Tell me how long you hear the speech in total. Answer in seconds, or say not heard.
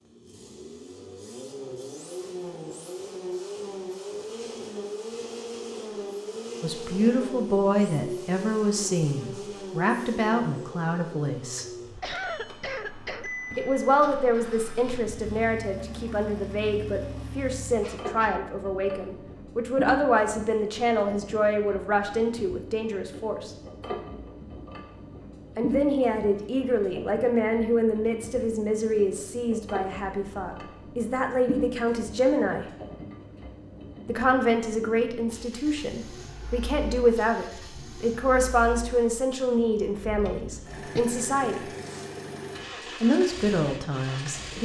31 s.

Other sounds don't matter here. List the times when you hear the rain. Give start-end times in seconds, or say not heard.
not heard.